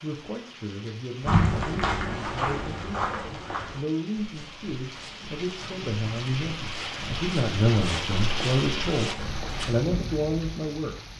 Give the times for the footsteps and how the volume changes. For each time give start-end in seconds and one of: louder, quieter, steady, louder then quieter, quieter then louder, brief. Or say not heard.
1.2-9.8 quieter then louder.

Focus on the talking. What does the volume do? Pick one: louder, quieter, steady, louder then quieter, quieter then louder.
louder.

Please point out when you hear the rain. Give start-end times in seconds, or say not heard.
0.0-11.1.